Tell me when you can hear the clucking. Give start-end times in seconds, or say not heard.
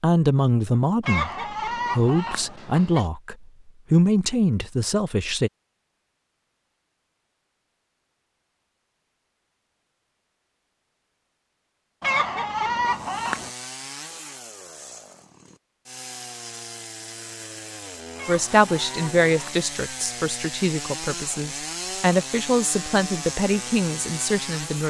1.0-3.0, 12.0-13.5, 18.1-19.7.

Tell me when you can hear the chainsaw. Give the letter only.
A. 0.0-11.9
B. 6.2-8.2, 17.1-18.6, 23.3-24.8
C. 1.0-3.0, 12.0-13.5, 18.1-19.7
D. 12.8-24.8
D.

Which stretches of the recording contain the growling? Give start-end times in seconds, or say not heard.
not heard.